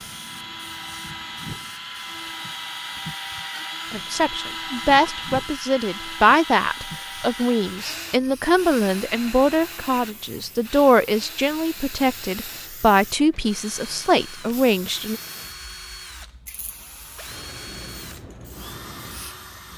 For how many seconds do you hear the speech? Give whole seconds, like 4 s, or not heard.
11 s.